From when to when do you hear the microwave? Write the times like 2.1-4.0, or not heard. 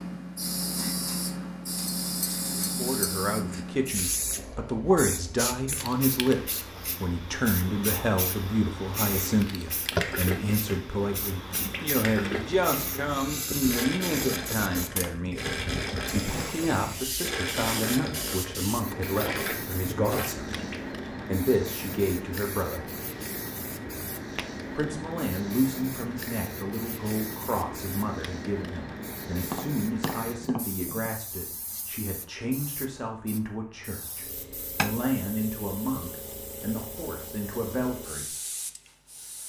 not heard.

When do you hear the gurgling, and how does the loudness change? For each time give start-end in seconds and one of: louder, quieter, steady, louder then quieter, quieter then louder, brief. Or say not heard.
9.7-20.8 steady.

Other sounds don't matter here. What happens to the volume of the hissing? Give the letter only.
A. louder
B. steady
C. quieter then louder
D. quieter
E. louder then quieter
D.